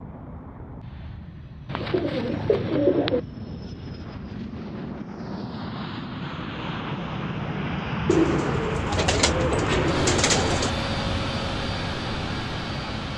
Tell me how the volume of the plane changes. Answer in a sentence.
The volume of the plane goes up.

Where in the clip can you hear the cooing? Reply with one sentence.
The cooing can be heard from 1.6 to 3.2 s and from 8.1 to 10.7 s.